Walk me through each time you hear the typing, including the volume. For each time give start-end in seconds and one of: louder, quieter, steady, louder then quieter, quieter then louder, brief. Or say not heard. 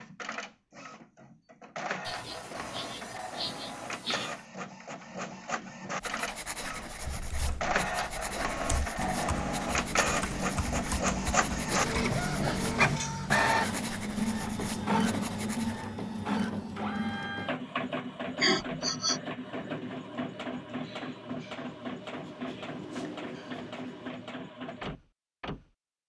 7.0-13.0 louder.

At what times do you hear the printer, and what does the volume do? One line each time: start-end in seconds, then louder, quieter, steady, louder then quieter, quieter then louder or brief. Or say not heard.
0.0-26.0 louder then quieter.